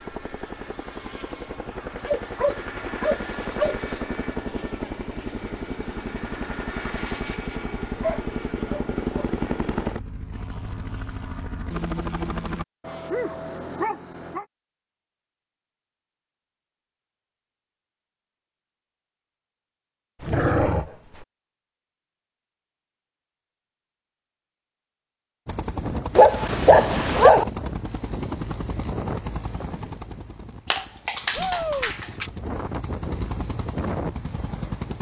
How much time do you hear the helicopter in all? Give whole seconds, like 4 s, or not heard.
22 s.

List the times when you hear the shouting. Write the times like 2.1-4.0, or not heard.
31.4-31.9.